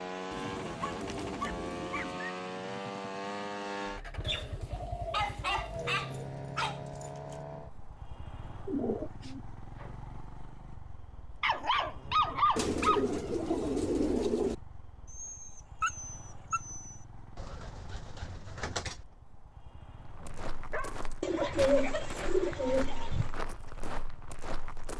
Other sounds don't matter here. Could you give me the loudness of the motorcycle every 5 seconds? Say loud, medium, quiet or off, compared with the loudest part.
loud, medium, quiet, quiet, quiet.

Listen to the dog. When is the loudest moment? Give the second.
12 s.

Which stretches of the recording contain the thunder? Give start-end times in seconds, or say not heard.
not heard.